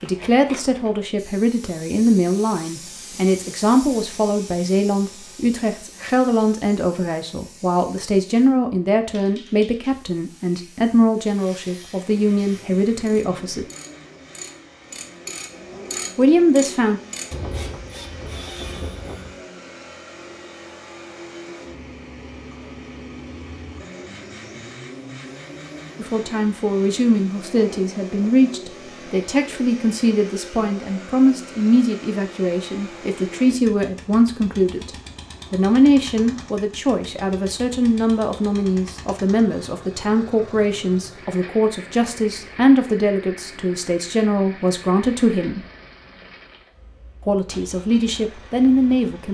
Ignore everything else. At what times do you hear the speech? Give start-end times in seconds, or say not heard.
0.0-13.7, 16.1-17.0, 25.9-34.9, 35.5-45.6, 47.2-49.2.